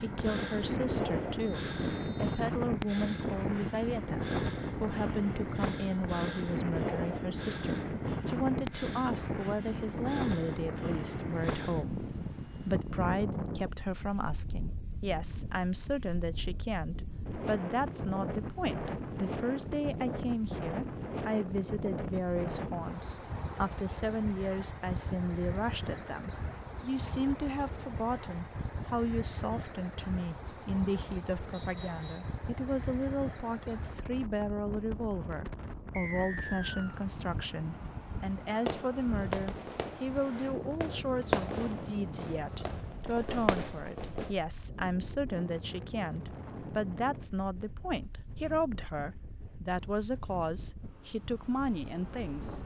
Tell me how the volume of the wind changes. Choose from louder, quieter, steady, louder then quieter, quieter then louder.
quieter.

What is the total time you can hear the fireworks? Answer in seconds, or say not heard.
6 s.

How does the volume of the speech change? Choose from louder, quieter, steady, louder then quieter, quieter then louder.
steady.